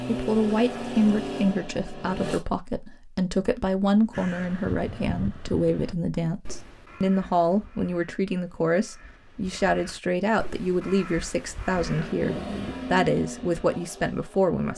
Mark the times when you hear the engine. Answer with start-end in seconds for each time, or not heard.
0.0-2.5, 11.7-14.7.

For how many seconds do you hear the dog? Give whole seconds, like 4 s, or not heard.
not heard.